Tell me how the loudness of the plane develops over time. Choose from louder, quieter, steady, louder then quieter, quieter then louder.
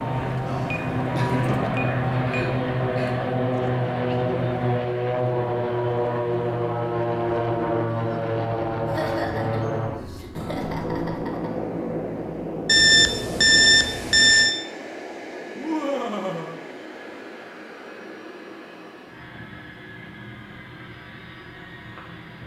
quieter.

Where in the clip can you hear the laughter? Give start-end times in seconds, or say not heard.
1.1-3.1, 8.8-11.6, 15.6-16.6.